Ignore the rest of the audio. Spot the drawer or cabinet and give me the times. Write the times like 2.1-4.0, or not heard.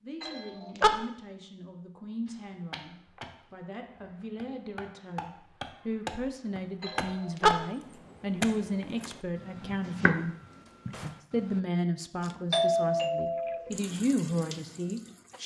10.4-11.2.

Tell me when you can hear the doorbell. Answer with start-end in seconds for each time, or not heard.
0.2-0.9, 6.8-7.5, 12.5-13.6.